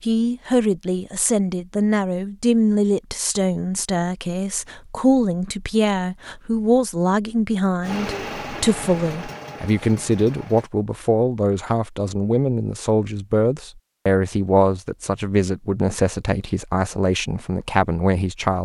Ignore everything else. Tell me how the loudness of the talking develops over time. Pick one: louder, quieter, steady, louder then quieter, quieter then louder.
steady.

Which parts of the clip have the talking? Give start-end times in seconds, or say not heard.
0.0-18.6.